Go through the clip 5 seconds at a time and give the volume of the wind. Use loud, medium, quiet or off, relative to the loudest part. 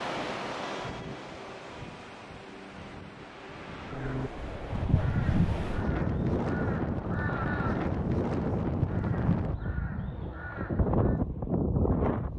medium, loud, loud.